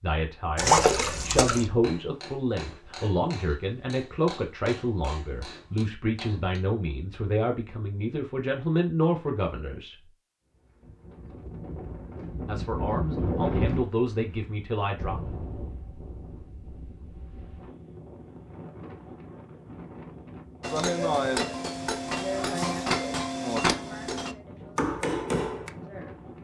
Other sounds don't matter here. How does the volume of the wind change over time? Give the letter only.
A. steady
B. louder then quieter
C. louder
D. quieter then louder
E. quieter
E.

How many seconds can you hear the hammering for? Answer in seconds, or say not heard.
10 s.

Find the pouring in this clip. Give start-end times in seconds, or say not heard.
0.6-1.6.